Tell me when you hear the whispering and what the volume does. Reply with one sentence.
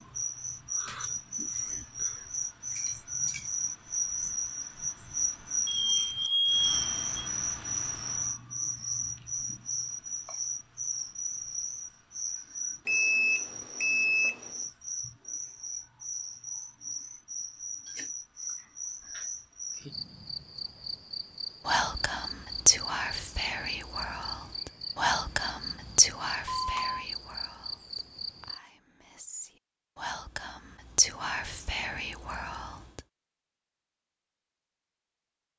The whispering can be heard from 21.6 to 33.0 s, getting quieter then louder.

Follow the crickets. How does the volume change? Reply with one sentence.
The loudness of the crickets goes down.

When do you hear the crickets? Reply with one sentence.
The crickets can be heard from 0.0 to 28.6 s.